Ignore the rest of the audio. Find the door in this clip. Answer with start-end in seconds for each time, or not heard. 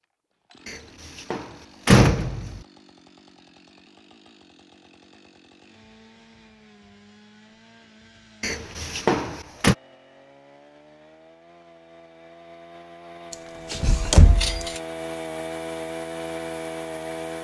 0.7-2.6, 8.4-9.8, 13.3-14.8.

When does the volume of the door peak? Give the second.
2 s.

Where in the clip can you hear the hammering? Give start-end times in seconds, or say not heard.
not heard.